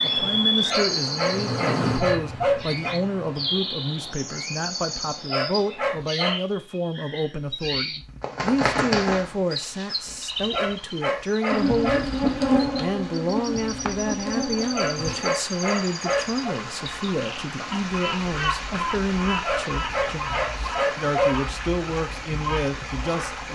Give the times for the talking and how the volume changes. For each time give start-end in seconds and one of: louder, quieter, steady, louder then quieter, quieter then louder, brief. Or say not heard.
0.0-23.4 steady.